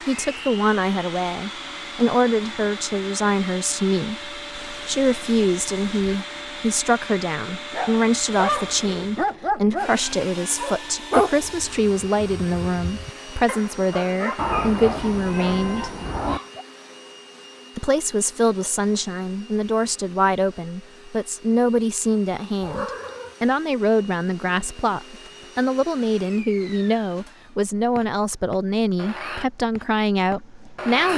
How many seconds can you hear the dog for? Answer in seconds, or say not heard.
9 s.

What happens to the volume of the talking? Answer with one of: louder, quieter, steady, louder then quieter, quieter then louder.
steady.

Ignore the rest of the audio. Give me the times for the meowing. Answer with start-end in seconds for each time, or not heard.
4.5-6.0, 14.3-16.4, 22.6-23.4.